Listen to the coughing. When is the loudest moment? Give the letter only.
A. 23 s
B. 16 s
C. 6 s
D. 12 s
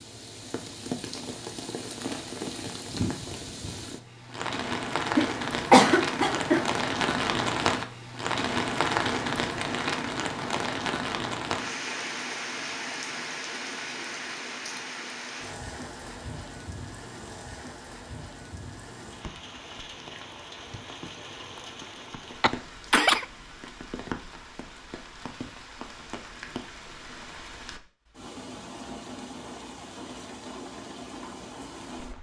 C.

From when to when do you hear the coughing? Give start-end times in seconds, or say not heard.
5.2-6.7, 22.4-23.2.